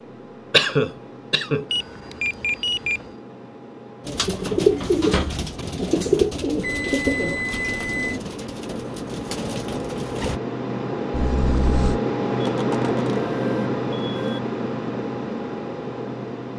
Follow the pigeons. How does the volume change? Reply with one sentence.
The loudness of the pigeons goes down.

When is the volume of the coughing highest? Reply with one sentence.
The loudest moment of the coughing is at 1 second.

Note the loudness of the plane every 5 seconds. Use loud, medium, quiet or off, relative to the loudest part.
quiet, medium, loud, medium.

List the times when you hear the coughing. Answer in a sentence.
The coughing can be heard from 0.5 to 1.6 s and from 11.1 to 12.0 s.